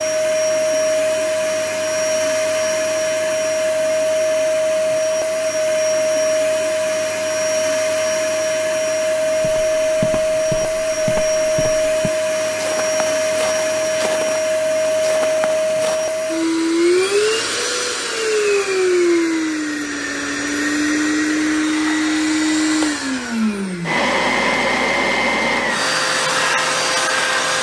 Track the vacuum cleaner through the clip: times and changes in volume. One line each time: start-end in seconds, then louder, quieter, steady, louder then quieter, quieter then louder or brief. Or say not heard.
0.0-27.5 steady.